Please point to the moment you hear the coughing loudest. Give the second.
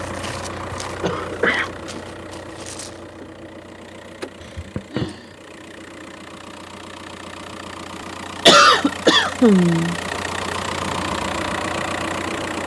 9 s.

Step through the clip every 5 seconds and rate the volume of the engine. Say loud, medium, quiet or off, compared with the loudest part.
medium, medium, loud.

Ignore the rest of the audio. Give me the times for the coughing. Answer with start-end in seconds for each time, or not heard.
1.0-2.0, 4.4-5.2, 8.4-10.0.